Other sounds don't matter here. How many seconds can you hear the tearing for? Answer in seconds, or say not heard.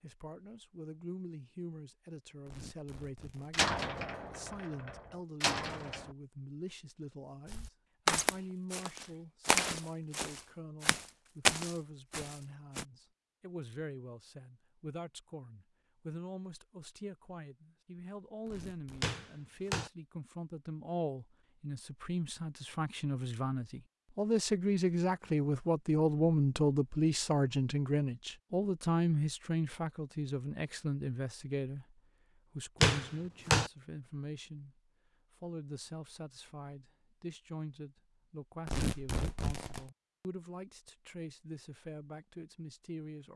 3 s.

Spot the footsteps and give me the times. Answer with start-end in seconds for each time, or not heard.
7.5-12.8.